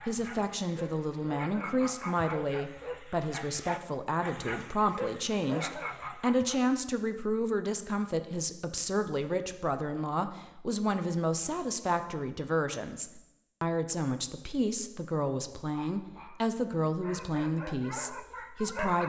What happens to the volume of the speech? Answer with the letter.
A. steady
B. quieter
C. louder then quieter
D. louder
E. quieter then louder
A.